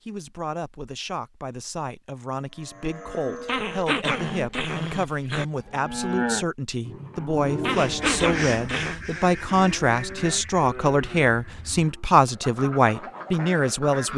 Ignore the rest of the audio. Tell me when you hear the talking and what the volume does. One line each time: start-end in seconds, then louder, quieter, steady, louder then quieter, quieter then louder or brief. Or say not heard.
0.1-14.1 louder.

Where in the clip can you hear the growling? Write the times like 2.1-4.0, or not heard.
3.5-5.5, 7.6-9.0.